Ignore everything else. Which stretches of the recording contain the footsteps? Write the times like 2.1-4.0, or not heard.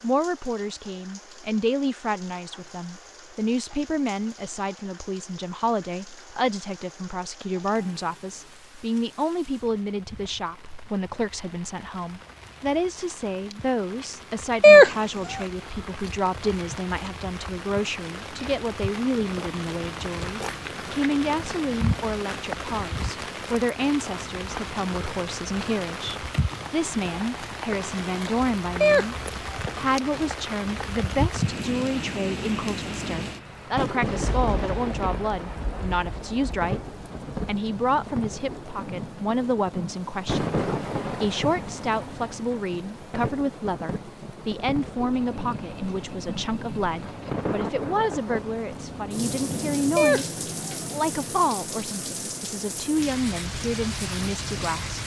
not heard.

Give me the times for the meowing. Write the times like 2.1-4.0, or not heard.
14.6-15.4, 28.8-29.6, 50.0-50.9.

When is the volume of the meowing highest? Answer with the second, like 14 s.
15 s.